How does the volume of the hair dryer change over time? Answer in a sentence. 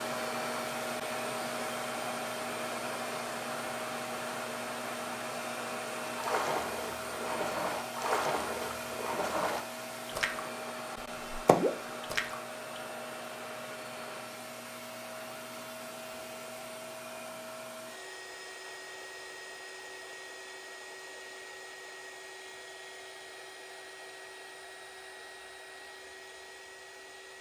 The loudness of the hair dryer goes down.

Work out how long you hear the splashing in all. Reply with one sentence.
The splashing can be heard for 7 seconds in total.